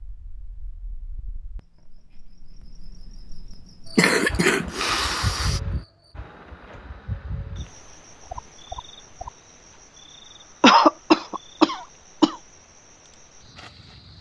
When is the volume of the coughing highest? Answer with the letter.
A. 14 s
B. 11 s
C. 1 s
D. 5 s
B.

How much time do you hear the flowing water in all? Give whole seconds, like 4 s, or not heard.
not heard.